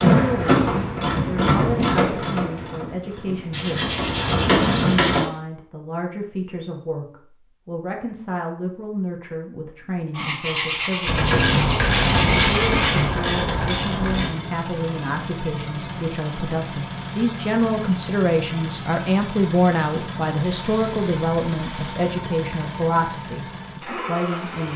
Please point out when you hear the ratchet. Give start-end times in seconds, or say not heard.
0.0-5.2, 11.1-14.3.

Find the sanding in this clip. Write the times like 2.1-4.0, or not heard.
3.5-5.3, 10.2-13.1, 20.6-22.0.